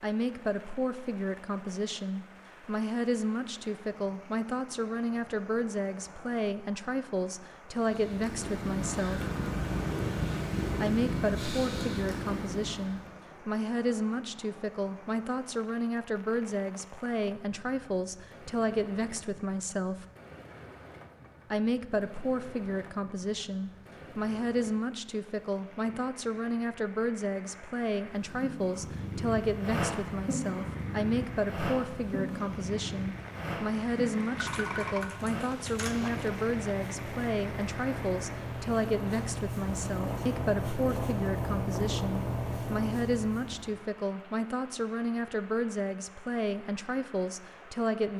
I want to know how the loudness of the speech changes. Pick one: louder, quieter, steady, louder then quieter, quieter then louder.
steady.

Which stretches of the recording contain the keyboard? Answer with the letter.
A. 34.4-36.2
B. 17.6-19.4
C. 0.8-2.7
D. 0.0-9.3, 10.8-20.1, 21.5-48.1
A.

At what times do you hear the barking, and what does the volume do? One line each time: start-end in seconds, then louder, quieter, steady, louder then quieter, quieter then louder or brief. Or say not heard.
not heard.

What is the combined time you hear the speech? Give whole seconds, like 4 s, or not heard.
45 s.